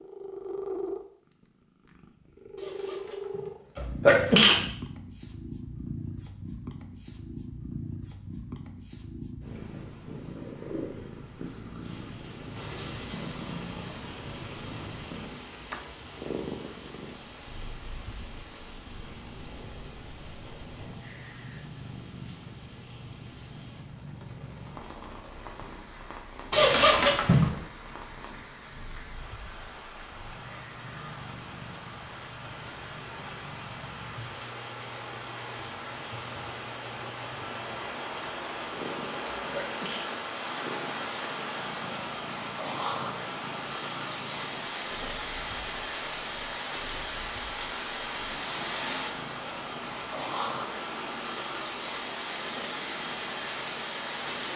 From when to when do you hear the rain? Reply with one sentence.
The rain can be heard from 11.8 to 54.5 s.